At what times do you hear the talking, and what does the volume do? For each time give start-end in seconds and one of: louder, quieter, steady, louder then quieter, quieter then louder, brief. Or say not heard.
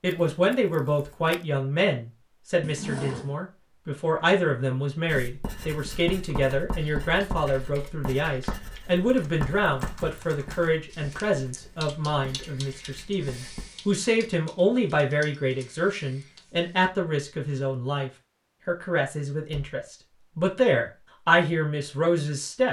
0.0-22.6 steady.